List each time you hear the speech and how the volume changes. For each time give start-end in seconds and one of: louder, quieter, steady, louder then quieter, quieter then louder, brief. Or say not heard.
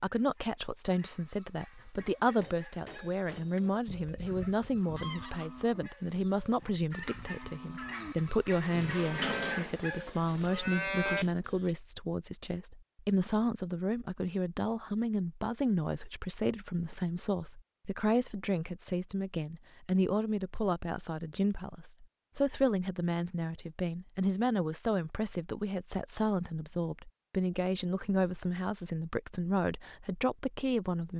0.0-31.1 steady.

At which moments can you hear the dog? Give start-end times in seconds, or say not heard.
not heard.